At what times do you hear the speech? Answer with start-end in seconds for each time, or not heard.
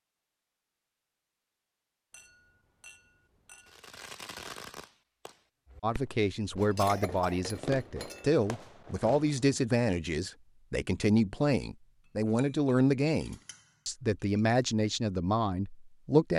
5.8-16.3.